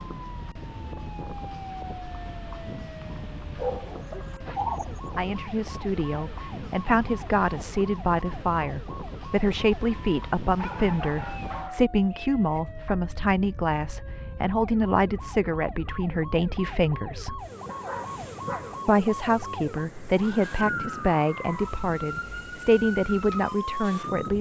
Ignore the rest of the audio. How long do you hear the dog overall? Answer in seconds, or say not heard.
6 s.